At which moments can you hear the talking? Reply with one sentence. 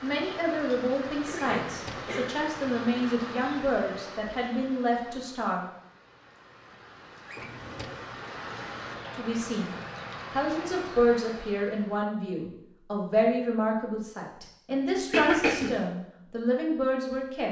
You can hear the talking from 0.0 to 5.7 s and from 9.2 to 17.4 s.